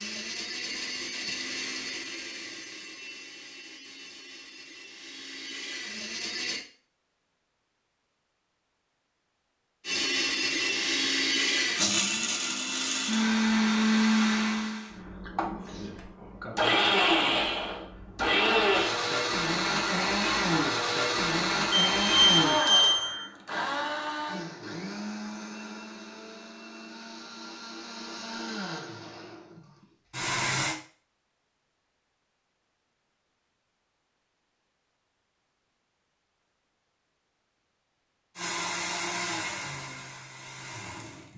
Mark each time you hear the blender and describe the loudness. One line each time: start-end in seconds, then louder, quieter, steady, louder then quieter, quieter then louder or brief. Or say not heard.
0.0-6.7 quieter then louder
9.8-30.8 quieter
38.4-41.3 brief.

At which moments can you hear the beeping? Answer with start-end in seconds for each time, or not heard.
21.7-23.2.